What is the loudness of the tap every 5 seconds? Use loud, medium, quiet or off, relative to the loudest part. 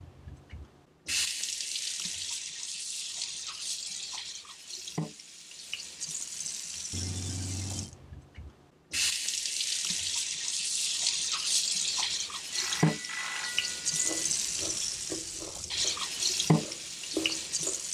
medium, medium, loud, loud.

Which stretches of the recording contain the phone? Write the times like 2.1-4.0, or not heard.
3.1-4.2, 6.9-7.9, 12.5-14.1.